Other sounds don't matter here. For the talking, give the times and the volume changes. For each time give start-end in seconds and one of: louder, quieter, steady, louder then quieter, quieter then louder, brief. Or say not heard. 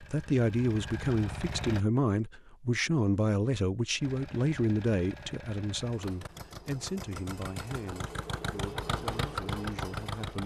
0.0-10.4 quieter.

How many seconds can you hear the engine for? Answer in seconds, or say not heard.
8 s.